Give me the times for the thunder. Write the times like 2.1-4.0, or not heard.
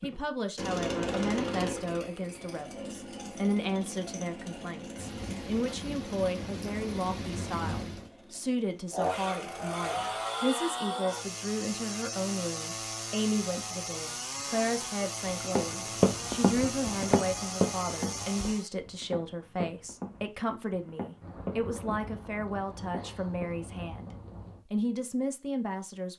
5.0-8.1, 21.2-24.6.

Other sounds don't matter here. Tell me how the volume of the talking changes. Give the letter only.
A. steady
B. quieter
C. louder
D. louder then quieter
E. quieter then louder
A.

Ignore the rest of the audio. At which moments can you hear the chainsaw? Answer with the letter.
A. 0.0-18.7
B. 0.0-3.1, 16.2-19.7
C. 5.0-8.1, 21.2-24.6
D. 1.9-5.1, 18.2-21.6
A.